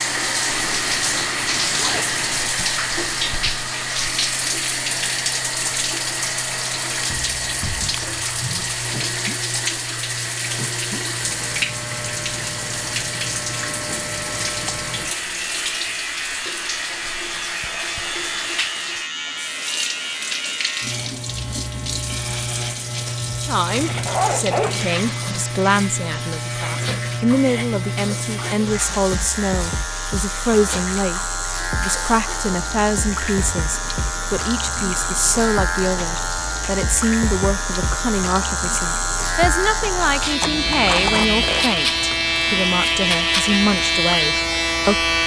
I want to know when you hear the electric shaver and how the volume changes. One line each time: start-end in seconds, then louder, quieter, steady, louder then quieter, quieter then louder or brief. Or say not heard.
0.0-45.2 louder.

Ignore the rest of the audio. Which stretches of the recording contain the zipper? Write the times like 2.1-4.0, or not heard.
0.5-2.5, 23.8-24.9, 40.4-41.6.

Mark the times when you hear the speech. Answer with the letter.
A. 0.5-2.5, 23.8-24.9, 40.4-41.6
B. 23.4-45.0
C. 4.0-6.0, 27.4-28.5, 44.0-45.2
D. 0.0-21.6
B.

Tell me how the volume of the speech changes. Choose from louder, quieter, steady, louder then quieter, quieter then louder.
steady.